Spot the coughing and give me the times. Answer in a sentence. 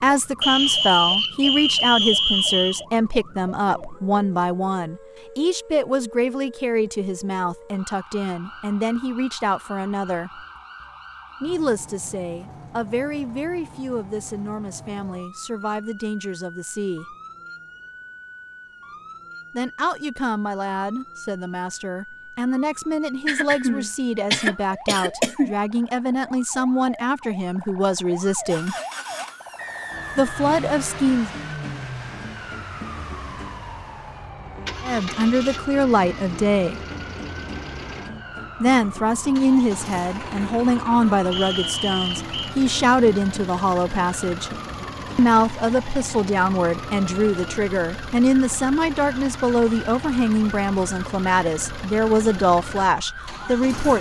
You can hear the coughing from 23.2 to 25.6 s.